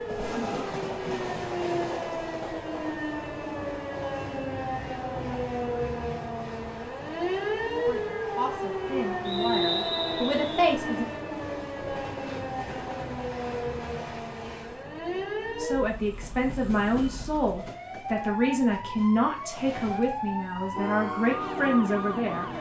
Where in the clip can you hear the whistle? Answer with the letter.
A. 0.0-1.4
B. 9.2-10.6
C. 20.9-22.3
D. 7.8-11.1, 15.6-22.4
B.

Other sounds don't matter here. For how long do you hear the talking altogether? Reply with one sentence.
You can hear the talking for 10 seconds altogether.